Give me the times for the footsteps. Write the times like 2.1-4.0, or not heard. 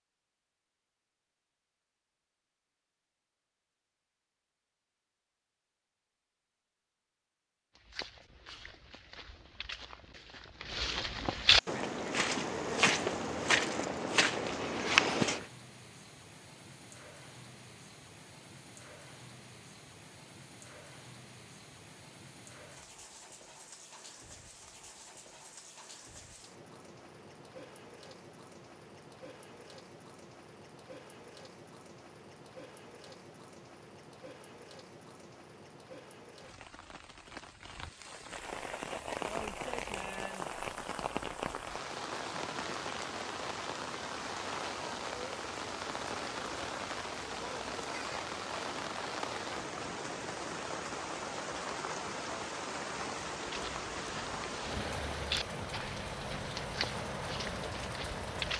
7.8-15.4, 53.4-58.5.